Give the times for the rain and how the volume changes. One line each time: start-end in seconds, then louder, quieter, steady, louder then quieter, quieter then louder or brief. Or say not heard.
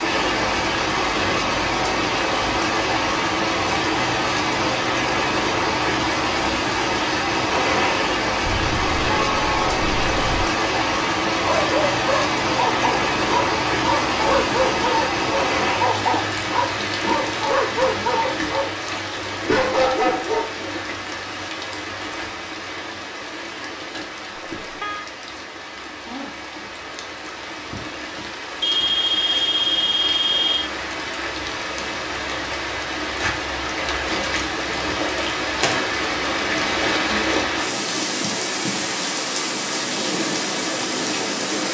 0.0-41.6 quieter then louder.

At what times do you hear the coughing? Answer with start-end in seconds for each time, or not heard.
not heard.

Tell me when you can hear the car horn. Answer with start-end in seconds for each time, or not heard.
8.4-10.4, 24.6-25.1, 28.6-30.7.